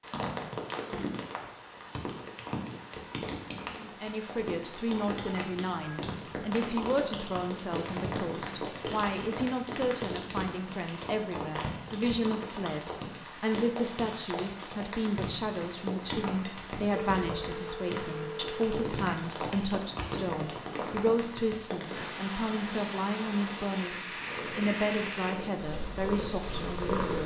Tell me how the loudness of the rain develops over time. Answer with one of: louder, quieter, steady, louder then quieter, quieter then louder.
steady.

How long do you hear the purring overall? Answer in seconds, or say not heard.
3 s.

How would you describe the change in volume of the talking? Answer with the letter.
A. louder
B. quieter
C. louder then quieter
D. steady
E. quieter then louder
D.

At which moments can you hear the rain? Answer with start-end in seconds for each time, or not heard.
0.0-27.2.